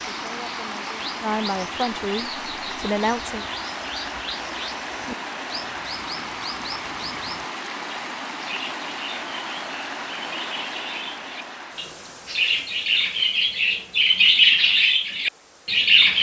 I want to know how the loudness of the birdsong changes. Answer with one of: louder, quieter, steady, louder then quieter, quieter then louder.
louder.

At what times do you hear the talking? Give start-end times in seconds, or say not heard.
0.0-3.5.